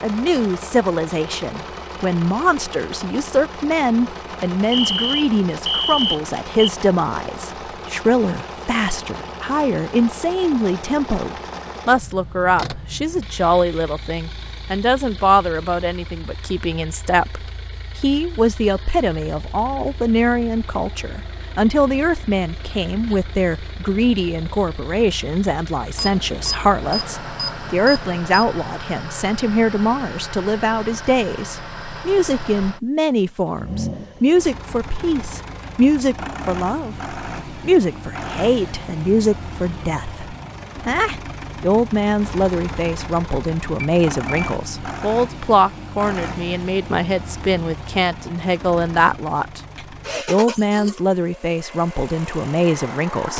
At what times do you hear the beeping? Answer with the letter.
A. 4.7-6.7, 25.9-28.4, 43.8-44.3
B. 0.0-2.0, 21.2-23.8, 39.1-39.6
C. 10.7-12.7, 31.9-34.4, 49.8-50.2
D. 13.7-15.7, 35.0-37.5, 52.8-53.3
A.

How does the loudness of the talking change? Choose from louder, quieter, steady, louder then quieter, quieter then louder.
steady.